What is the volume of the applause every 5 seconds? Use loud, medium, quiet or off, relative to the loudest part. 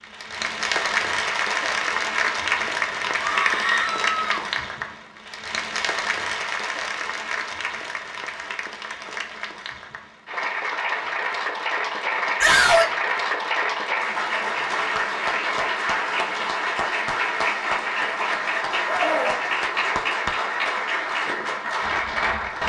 loud, medium, loud, loud, loud.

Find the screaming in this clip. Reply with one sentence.
You can hear the screaming from 3.2 to 4.4 s, from 12.4 to 12.9 s and from 18.9 to 19.4 s.